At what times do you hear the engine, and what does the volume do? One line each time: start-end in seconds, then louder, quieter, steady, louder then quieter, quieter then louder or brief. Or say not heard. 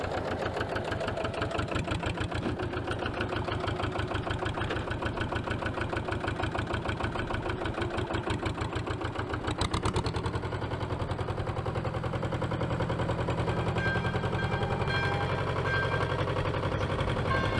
0.0-17.5 steady.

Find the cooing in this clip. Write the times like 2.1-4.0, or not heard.
not heard.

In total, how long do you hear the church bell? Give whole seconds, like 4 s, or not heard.
4 s.